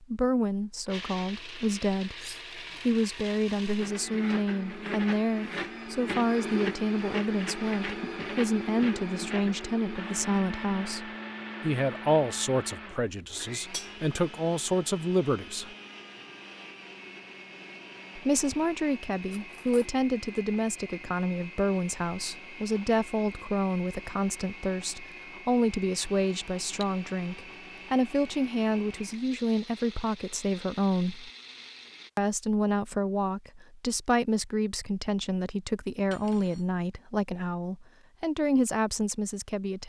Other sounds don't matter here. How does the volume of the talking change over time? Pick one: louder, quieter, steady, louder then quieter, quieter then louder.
steady.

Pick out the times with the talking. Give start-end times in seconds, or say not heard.
0.0-15.8, 18.1-31.3, 32.1-39.8.